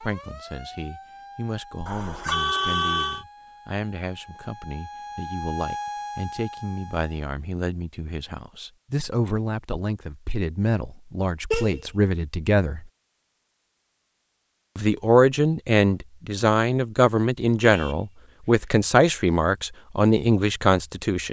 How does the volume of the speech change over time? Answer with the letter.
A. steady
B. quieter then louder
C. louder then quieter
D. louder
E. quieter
D.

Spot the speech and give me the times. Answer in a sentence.
You can hear the speech from 0.0 to 12.9 s and from 14.8 to 21.2 s.